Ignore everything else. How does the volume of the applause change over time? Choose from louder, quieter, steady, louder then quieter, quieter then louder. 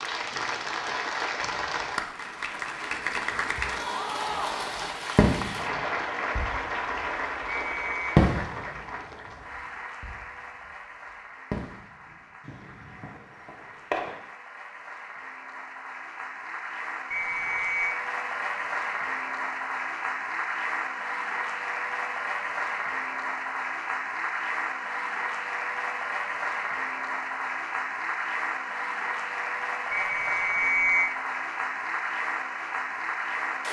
quieter then louder.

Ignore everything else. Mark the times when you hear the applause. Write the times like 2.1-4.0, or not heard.
0.0-33.6.